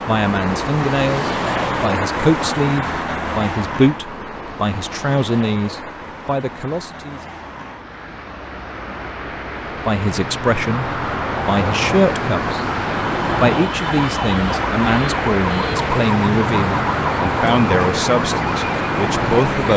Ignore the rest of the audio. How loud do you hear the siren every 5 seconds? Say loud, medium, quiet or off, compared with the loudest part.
off, off, loud, loud.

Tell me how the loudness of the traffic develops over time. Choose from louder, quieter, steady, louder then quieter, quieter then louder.
quieter then louder.